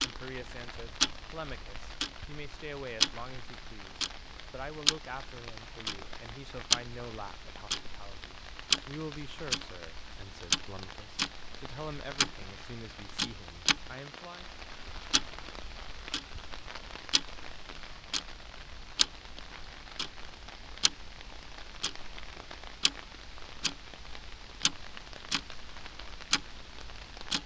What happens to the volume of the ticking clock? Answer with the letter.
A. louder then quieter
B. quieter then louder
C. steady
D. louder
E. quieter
E.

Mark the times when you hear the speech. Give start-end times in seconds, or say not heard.
0.0-14.5.